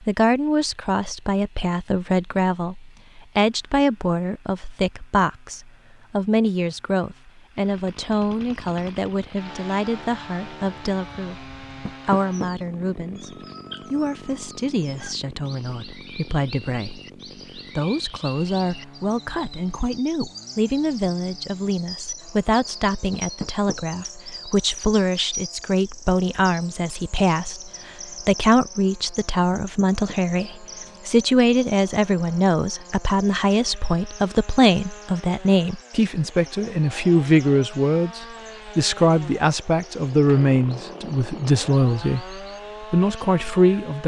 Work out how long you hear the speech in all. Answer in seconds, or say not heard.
44 s.